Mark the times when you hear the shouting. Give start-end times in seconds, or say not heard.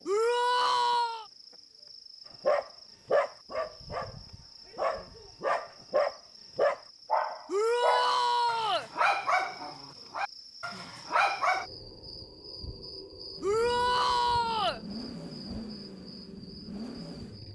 0.1-1.2, 7.5-8.9, 13.4-14.8.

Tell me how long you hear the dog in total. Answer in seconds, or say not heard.
9 s.